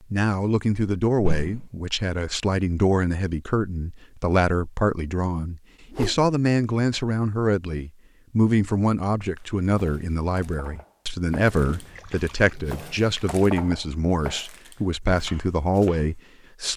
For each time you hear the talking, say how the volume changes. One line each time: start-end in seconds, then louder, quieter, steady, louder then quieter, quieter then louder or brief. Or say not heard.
0.1-16.7 steady.